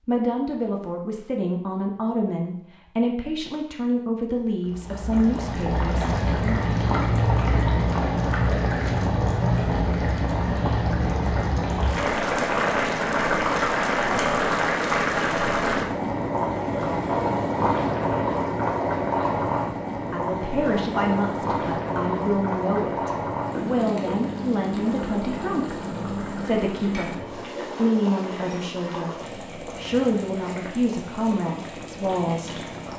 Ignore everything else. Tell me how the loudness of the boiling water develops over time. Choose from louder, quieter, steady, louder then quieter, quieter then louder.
quieter.